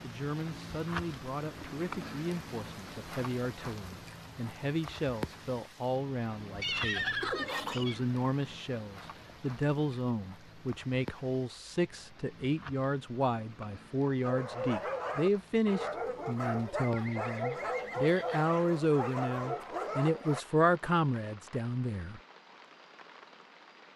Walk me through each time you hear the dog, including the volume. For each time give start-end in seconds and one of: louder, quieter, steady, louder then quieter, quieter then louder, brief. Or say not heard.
14.2-20.4 steady.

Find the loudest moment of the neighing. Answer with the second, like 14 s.
7 s.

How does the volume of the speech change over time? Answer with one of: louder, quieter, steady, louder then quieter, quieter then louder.
louder.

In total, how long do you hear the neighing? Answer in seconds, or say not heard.
3 s.